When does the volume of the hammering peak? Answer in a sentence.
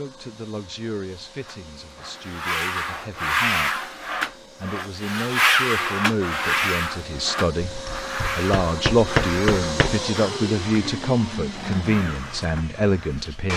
The volume of the hammering peaks at 9 seconds.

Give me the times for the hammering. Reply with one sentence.
The hammering can be heard from 7.6 to 10.0 s.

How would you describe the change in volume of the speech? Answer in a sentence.
The loudness of the speech goes up.